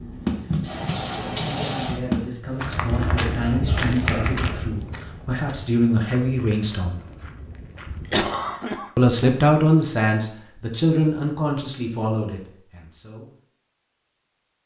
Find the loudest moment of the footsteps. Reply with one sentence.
The volume of the footsteps peaks at 4 seconds.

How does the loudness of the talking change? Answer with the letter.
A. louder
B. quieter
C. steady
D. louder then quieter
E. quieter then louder
D.